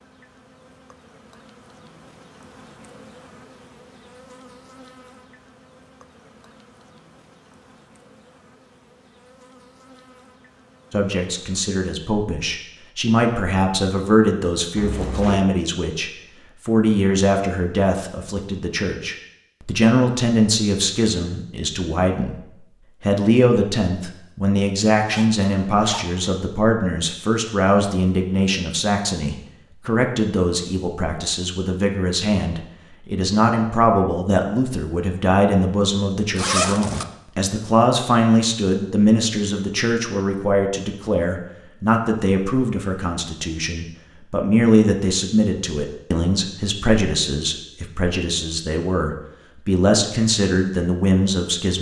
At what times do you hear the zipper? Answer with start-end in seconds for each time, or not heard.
14.8-15.4, 25.1-26.4, 36.4-37.0.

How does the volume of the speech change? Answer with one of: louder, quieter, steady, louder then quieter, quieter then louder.
steady.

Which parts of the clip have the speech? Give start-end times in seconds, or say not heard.
10.9-22.4, 23.0-51.7.